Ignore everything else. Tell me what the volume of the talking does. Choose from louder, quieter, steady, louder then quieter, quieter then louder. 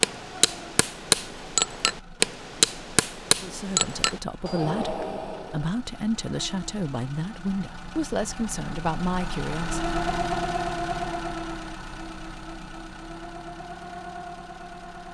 steady.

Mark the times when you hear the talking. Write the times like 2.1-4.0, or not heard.
3.4-9.8.